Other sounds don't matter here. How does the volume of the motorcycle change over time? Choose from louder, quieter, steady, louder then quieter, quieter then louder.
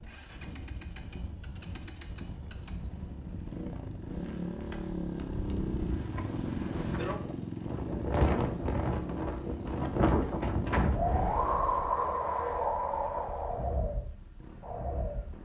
louder then quieter.